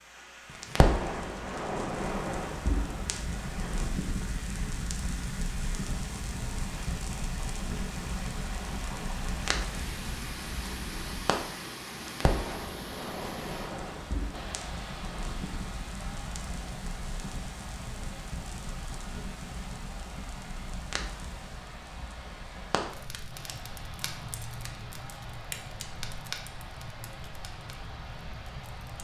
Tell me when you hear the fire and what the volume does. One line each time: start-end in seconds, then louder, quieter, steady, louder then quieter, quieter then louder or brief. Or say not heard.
0.5-28.9 quieter.